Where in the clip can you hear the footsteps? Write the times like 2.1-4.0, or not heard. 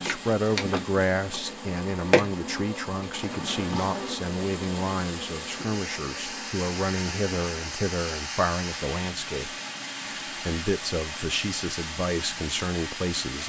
not heard.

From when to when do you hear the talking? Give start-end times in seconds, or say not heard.
0.0-9.5, 10.4-13.4.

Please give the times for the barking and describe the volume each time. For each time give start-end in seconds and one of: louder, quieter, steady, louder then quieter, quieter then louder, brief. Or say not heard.
not heard.